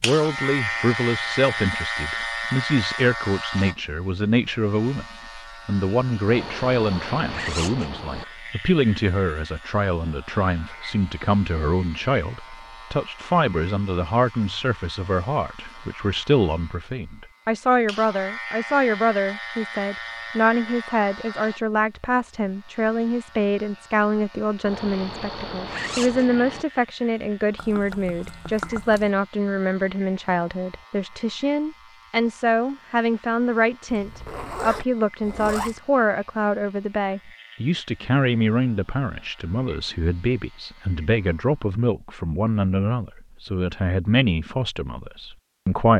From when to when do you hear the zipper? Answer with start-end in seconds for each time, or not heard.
6.2-8.2, 24.6-26.6, 33.9-35.8.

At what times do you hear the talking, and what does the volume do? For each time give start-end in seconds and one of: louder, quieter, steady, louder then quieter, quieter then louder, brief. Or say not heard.
0.0-45.9 steady.